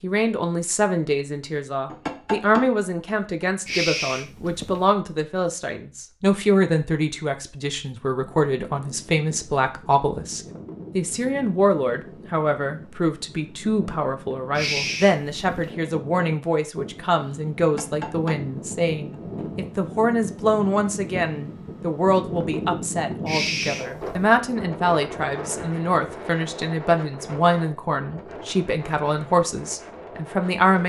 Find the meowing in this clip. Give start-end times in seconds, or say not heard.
3.6-4.8, 14.6-15.8, 23.2-24.3.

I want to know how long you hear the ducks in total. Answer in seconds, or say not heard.
not heard.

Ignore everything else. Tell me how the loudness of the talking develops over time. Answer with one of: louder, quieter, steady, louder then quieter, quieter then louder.
steady.